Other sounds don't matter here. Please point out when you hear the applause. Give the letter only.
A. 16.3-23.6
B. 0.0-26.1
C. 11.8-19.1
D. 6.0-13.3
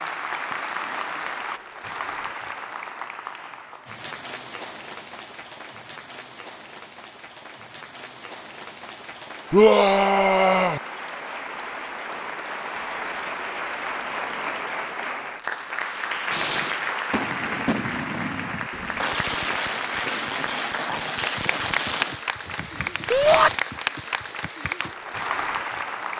B.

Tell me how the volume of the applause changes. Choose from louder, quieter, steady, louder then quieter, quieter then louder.
quieter then louder.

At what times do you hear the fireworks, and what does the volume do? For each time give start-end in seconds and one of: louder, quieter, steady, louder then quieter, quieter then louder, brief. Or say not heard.
16.3-23.6 quieter.